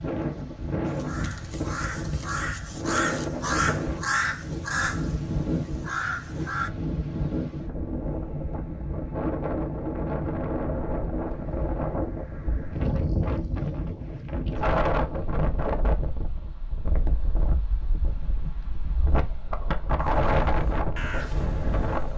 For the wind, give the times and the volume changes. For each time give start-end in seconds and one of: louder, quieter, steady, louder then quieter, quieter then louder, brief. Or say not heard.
0.0-22.1 steady.